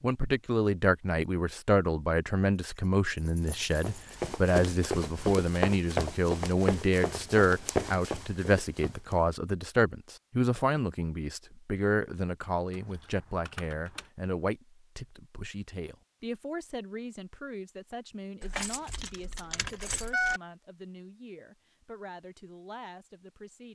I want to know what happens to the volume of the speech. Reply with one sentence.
The volume of the speech goes down.